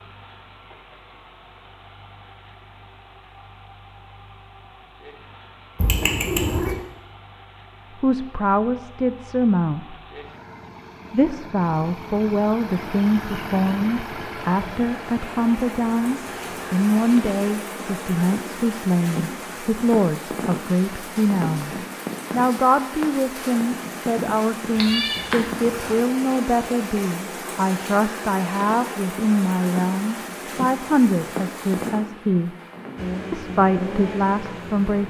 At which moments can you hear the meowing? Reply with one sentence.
You can hear the meowing from 5.8 to 6.8 s and from 24.8 to 25.9 s.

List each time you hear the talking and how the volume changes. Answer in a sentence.
You can hear the talking briefly from 8.0 to 9.9 s; from 11.1 to 32.5 s, at a steady volume; and briefly from 33.3 to 35.0 s.